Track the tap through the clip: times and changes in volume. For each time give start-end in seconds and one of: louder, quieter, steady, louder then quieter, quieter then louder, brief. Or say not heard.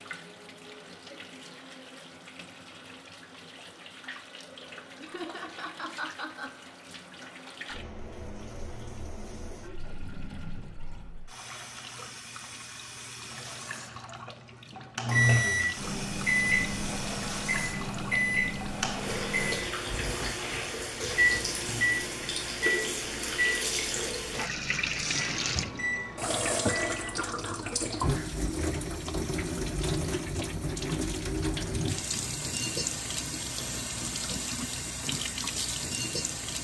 0.0-36.5 louder.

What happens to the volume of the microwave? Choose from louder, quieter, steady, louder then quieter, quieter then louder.
quieter.